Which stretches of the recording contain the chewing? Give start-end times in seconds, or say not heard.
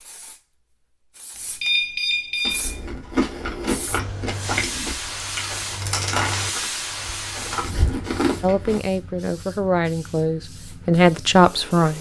2.4-8.8.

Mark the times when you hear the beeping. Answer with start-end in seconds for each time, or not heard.
1.6-2.8.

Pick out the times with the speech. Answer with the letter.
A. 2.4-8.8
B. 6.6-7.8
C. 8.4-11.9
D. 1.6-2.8
C.